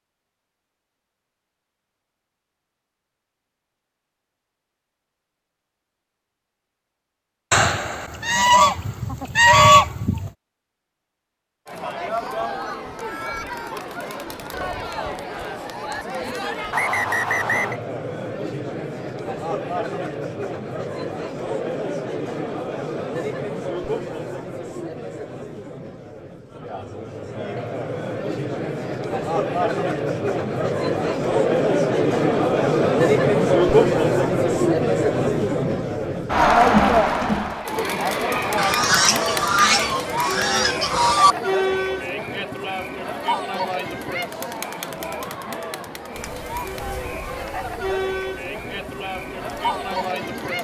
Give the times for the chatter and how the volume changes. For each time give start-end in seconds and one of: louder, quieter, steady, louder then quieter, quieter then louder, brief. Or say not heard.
11.7-50.5 louder then quieter.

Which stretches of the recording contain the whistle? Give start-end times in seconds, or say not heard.
16.7-17.8.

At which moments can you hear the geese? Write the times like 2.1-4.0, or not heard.
7.5-10.3, 38.5-41.4.